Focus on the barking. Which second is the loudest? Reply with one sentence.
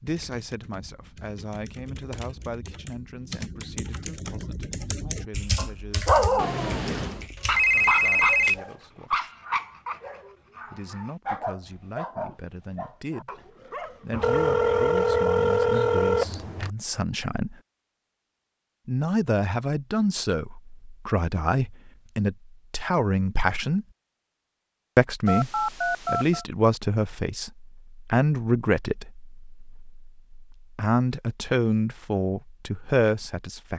The volume of the barking peaks at 6 seconds.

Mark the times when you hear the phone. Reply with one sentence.
The phone can be heard from 6.3 to 8.6 s, from 14.1 to 16.7 s and from 25.2 to 26.4 s.